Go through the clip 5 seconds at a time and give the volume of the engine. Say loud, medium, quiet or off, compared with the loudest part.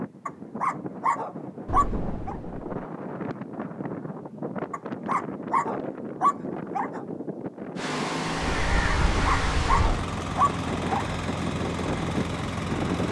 off, loud, loud.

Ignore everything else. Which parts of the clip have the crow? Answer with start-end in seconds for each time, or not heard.
8.3-10.1.